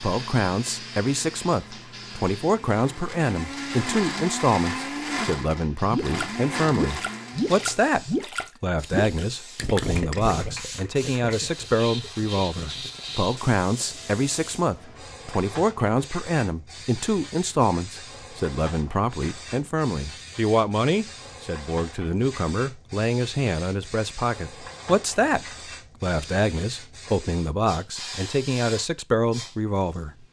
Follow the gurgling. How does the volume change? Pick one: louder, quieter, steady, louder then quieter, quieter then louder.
quieter.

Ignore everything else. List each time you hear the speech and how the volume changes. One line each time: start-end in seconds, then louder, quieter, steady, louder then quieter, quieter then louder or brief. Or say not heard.
0.0-30.1 steady.